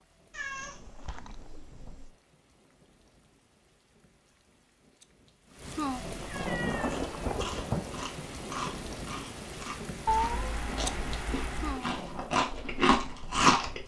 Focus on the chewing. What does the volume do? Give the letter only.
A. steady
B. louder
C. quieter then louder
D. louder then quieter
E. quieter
B.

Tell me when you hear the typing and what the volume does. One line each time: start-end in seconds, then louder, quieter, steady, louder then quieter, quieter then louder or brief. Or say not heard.
not heard.